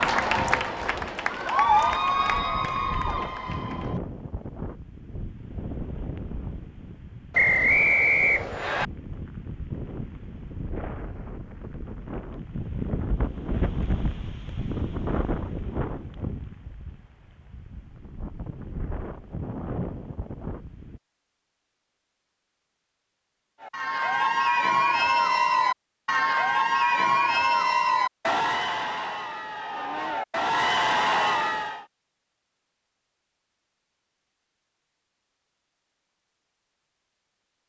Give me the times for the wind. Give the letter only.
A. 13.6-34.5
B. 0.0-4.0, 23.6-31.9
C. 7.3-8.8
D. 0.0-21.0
D.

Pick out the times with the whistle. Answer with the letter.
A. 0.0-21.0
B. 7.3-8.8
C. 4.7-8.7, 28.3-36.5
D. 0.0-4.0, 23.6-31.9
B.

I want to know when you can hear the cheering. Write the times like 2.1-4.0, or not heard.
0.0-4.0, 23.6-31.9.